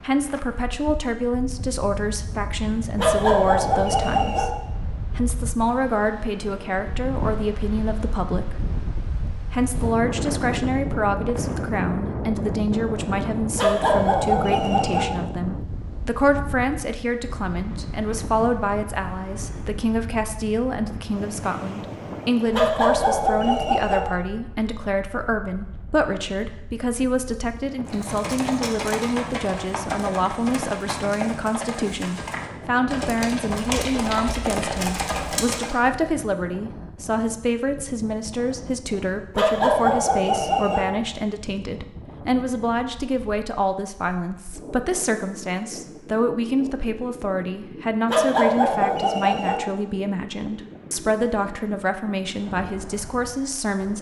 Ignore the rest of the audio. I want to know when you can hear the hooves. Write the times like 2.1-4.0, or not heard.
27.9-35.8.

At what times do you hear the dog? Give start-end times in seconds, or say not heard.
3.0-4.5, 13.6-15.1, 22.5-24.0, 39.4-40.9, 48.0-49.5.